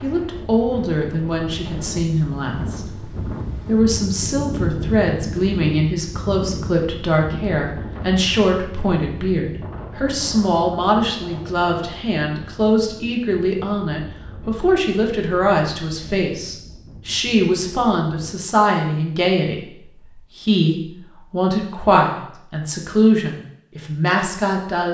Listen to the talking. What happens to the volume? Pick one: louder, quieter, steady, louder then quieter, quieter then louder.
steady.